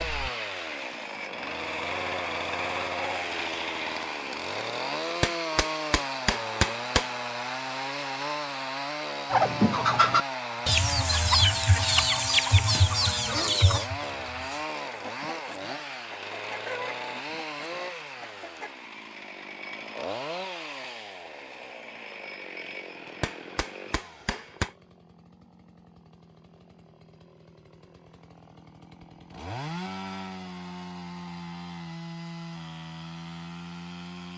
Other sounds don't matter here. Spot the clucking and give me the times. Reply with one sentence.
The clucking can be heard from 9.3 to 18.8 s.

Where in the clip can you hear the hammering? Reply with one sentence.
The hammering can be heard from 5.2 to 7.2 s and from 23.2 to 24.7 s.